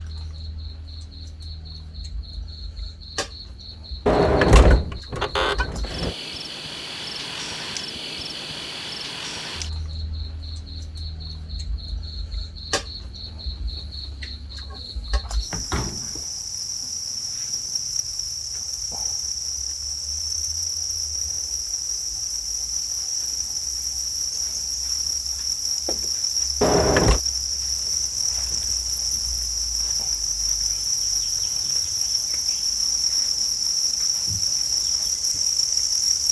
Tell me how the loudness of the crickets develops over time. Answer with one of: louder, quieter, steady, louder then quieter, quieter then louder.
louder.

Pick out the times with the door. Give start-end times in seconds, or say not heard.
4.0-6.2, 15.5-16.2, 26.6-27.2.